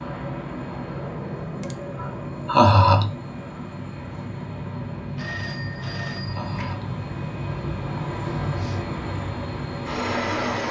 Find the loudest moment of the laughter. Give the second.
3 s.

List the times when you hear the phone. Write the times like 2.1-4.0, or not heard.
5.2-6.8.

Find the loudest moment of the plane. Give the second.
10 s.